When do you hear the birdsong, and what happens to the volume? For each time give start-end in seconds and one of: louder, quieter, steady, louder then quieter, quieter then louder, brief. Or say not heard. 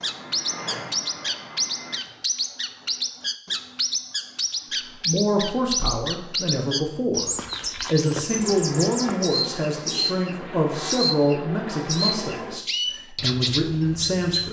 0.0-14.4 steady.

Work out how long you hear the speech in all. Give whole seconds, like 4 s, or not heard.
9 s.